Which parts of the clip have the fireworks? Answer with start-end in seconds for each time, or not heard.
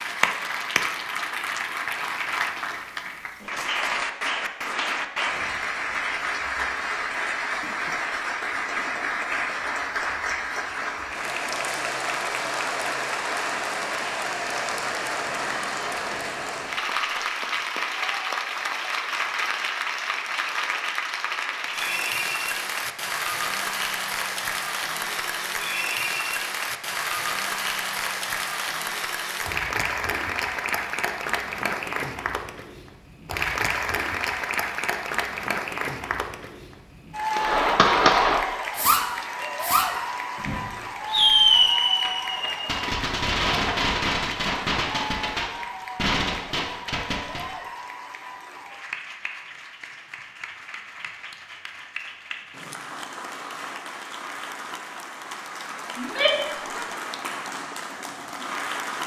37.4-47.5.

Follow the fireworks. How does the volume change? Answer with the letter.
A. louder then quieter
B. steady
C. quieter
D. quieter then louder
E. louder
C.